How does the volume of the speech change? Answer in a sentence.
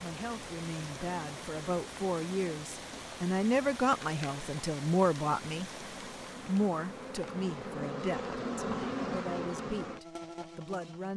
The volume of the speech goes up, then down.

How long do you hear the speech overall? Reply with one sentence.
You can hear the speech for 10 seconds altogether.